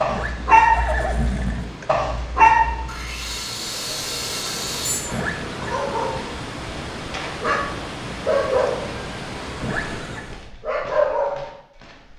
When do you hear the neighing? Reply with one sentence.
You can hear the neighing from 0.1 to 1.9 s, from 5.1 to 5.8 s and from 9.6 to 10.2 s.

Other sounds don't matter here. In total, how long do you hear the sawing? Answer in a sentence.
You can hear the sawing for 2 seconds altogether.